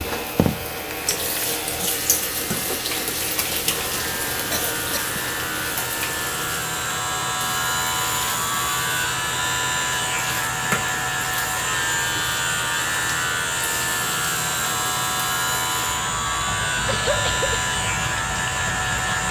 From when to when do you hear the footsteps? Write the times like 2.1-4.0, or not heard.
not heard.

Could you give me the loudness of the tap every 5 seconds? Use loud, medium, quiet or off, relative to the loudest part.
loud, medium, medium, medium.